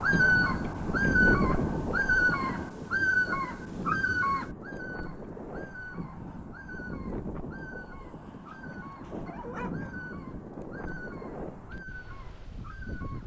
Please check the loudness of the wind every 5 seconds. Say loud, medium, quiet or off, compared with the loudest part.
loud, medium, medium.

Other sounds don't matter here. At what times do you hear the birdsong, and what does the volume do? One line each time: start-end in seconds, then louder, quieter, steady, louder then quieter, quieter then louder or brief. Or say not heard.
0.0-13.2 quieter.